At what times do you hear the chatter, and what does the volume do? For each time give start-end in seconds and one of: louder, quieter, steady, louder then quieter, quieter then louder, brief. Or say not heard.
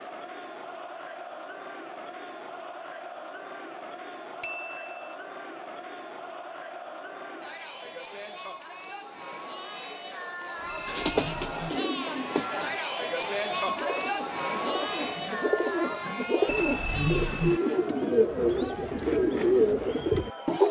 0.0-20.6 louder then quieter.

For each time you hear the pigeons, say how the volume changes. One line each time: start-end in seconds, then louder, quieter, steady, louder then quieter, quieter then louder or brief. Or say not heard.
10.8-20.6 louder.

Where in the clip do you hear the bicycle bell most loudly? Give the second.
17 s.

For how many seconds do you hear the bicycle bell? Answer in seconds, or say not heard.
3 s.